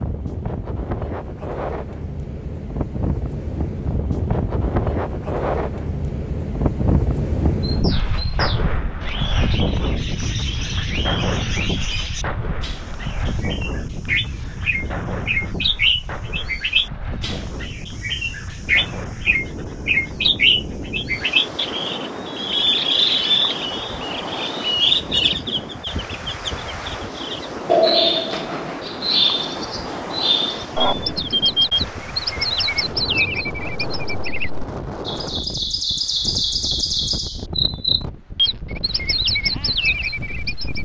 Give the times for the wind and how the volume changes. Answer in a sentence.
The wind can be heard from 0.0 to 40.8 s, getting quieter.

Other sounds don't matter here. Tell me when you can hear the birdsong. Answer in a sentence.
The birdsong can be heard from 7.7 to 40.8 s.